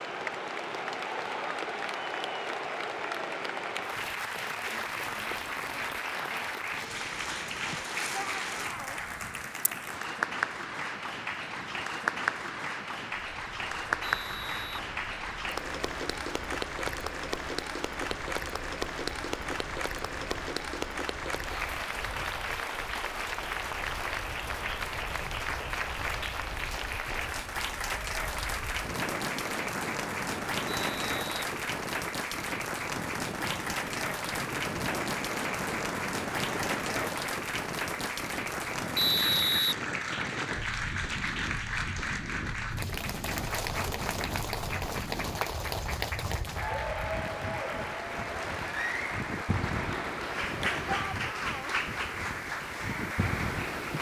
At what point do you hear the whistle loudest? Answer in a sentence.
The loudest moment of the whistle is at 39 seconds.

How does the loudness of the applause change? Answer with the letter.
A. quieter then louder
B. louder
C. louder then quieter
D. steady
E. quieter
D.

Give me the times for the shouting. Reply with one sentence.
You can hear the shouting from 8.1 to 9.0 s and from 50.9 to 51.8 s.